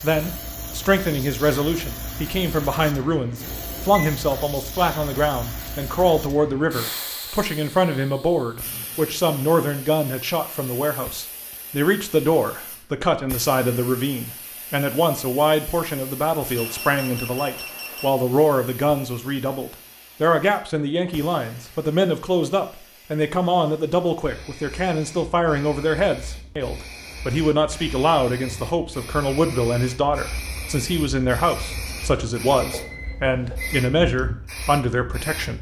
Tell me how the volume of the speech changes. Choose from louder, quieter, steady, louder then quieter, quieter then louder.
steady.